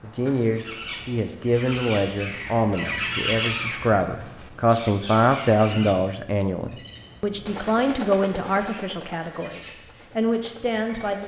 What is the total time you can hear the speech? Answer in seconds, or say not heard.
11 s.